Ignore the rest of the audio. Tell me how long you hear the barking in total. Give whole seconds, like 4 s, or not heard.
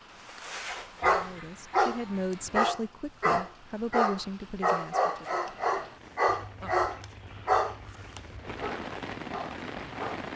10 s.